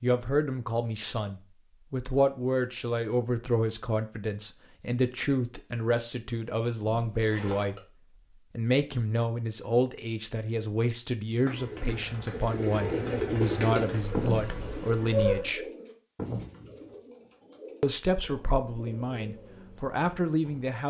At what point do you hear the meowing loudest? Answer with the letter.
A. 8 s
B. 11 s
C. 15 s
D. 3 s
C.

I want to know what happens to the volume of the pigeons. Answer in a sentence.
The volume of the pigeons goes down.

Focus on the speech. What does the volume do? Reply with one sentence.
The loudness of the speech stays about the same.